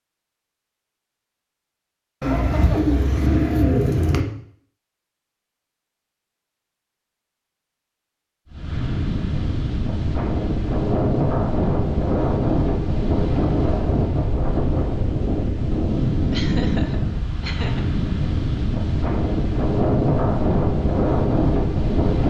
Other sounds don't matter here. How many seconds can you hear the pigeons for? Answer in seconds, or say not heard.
2 s.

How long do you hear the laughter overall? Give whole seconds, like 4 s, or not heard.
2 s.